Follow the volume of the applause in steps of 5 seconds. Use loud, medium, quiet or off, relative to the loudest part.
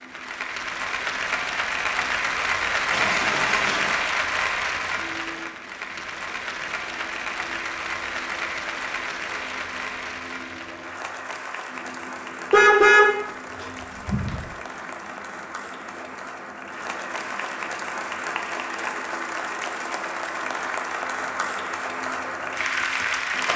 loud, medium, medium, medium, loud.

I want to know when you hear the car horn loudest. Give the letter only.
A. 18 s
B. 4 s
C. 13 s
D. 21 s
C.